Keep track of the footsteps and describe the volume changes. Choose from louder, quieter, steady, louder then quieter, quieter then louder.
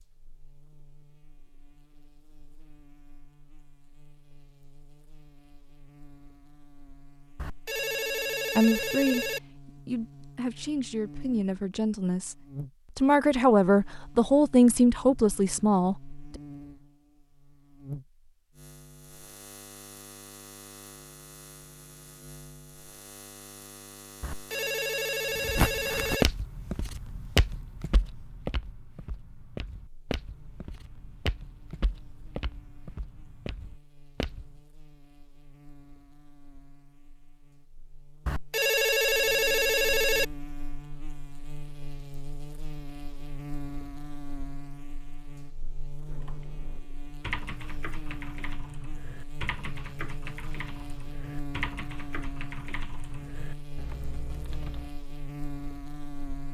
quieter.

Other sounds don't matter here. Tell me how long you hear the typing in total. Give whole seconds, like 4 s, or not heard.
9 s.